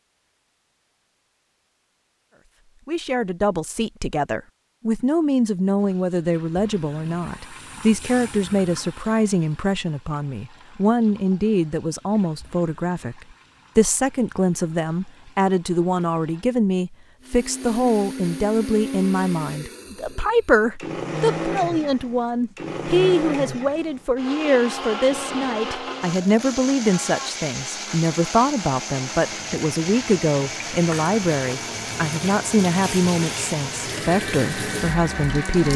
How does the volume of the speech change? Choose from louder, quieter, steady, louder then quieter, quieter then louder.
steady.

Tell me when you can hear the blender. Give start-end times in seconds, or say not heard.
17.2-35.7.